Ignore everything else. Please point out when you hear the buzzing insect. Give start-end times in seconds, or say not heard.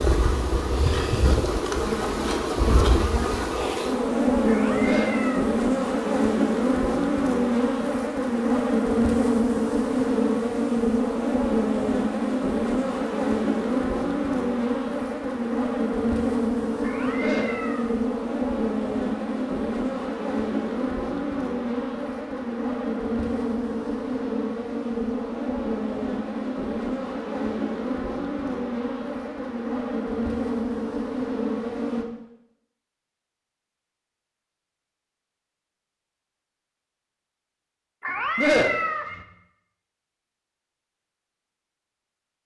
0.0-32.0.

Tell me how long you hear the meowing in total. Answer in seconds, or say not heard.
3 s.